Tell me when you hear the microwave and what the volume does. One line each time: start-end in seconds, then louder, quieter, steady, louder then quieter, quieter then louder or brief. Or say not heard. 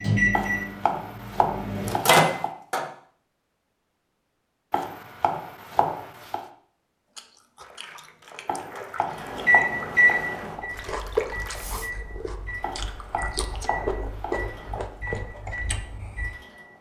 0.0-2.9 brief
9.2-16.7 quieter.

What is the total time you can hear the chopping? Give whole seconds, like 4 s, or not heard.
8 s.